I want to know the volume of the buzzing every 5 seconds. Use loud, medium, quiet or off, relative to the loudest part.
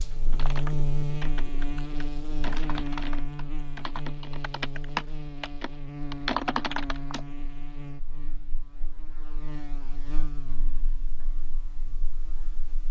loud, medium, quiet.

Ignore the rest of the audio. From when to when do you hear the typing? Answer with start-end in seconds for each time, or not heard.
0.3-7.2.